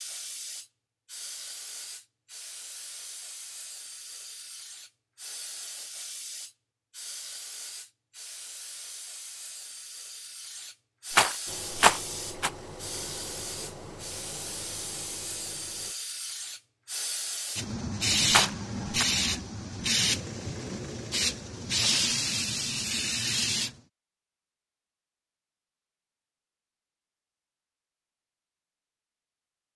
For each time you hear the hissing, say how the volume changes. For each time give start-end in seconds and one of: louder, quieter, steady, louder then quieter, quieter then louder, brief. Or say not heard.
0.0-23.7 louder.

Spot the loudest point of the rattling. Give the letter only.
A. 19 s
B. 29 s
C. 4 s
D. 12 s
D.